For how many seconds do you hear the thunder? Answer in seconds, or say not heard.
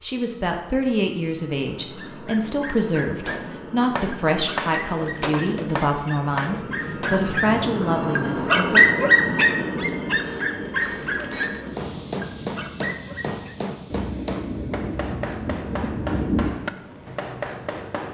3 s.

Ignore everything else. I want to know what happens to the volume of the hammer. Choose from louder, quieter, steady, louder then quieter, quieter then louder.
quieter then louder.